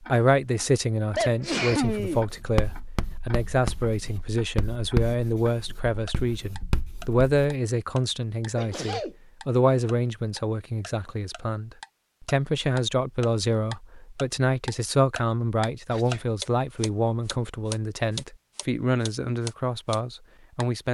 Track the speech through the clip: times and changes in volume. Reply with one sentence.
The speech can be heard from 0.1 to 20.9 s, at a steady volume.